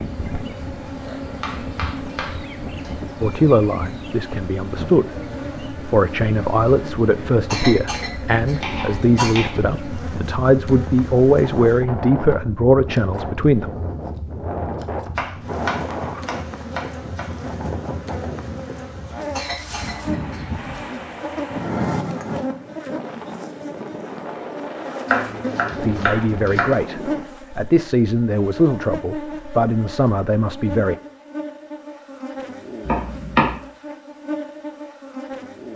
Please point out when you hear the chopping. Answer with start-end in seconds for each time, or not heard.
1.4-3.0, 8.6-9.5, 15.2-17.3, 25.1-26.8, 32.8-33.5.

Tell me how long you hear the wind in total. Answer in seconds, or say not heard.
27 s.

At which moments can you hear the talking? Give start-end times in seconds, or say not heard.
3.2-13.7, 25.8-30.9.